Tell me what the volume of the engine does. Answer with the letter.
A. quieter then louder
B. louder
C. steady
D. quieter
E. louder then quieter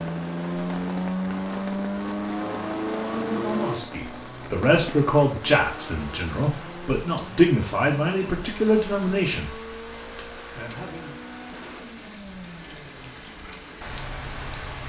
D.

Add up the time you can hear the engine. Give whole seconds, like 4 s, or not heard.
15 s.